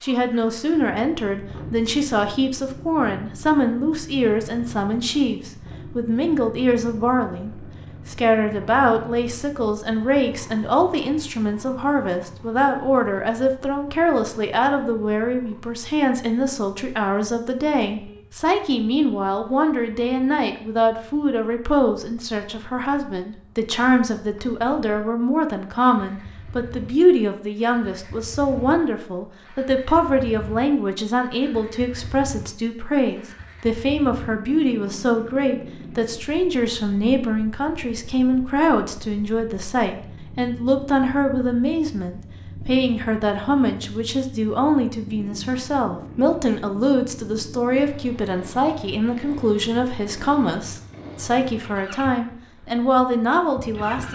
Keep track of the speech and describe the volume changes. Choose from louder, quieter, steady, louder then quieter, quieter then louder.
steady.